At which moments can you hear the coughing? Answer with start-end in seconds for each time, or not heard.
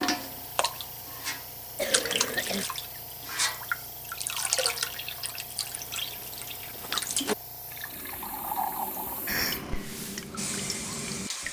1.8-2.6, 9.2-9.7.